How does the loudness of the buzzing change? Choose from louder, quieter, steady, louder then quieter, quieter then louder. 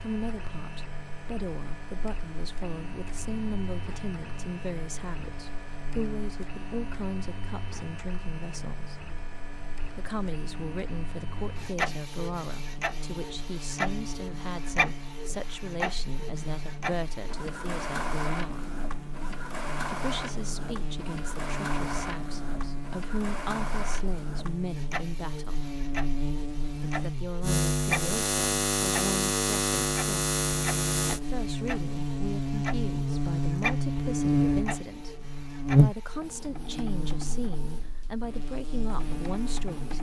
louder.